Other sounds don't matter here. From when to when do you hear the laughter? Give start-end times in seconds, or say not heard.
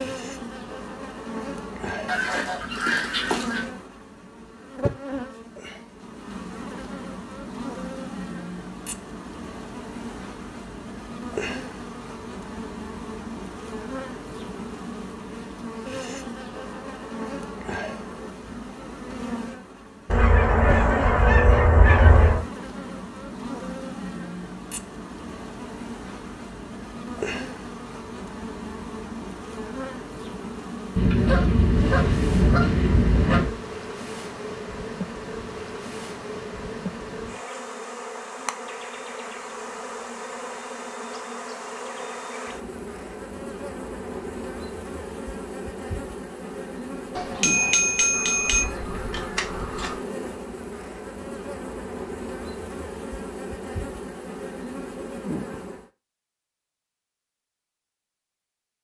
not heard.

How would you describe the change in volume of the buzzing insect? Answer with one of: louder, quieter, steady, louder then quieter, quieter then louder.
steady.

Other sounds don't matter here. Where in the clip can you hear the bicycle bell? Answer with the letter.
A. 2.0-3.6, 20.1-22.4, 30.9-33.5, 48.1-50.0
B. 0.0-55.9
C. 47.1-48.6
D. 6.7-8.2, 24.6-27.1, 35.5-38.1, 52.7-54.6
C.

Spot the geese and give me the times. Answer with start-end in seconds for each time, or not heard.
2.0-3.6, 20.1-22.4, 30.9-33.5, 48.1-50.0.